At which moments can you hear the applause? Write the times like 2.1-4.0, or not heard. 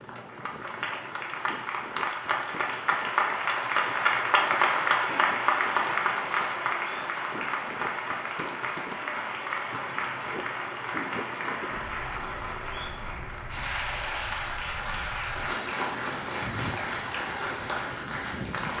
0.0-18.7.